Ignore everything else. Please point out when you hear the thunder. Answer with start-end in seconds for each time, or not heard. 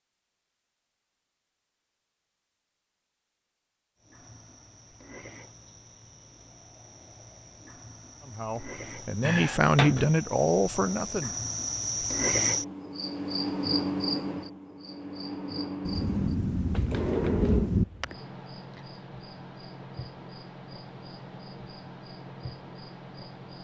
15.8-17.9.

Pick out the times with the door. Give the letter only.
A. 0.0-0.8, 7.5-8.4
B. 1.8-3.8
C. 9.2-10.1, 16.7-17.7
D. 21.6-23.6
C.